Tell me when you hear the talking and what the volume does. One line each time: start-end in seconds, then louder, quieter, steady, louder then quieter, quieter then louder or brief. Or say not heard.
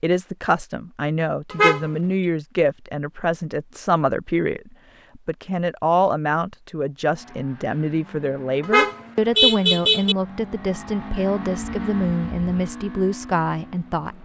0.0-14.1 steady.